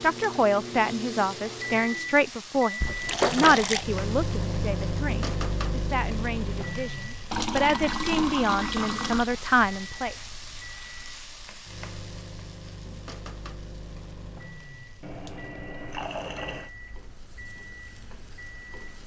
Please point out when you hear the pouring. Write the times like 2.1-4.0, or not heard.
2.8-3.9, 7.3-9.3, 15.0-16.7.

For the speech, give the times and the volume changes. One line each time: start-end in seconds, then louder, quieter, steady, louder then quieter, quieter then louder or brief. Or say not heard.
0.0-10.2 quieter then louder.